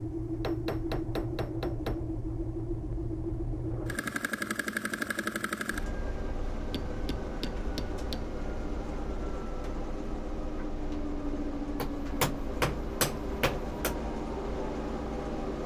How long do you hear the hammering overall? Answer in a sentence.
You can hear the hammering for 6 seconds altogether.